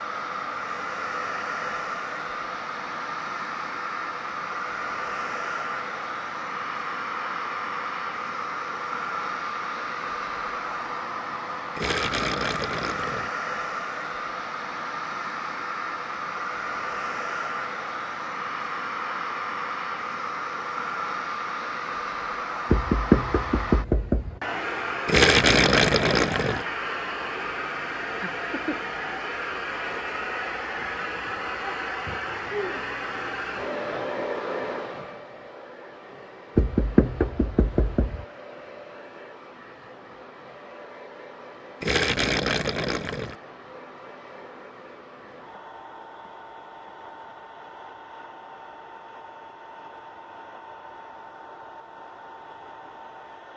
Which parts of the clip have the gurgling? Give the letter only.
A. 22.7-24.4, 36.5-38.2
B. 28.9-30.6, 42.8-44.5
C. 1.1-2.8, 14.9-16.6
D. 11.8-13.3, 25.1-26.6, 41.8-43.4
D.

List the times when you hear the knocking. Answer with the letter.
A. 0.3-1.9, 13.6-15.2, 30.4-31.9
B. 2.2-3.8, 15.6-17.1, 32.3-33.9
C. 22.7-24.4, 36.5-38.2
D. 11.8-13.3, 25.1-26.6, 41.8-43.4
C.